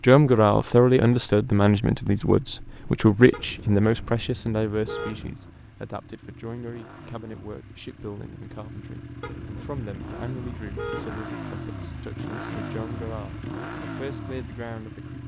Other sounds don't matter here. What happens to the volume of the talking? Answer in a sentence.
The loudness of the talking goes down.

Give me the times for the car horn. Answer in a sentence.
You can hear the car horn from 3.3 to 5.3 s and from 9.2 to 11.2 s.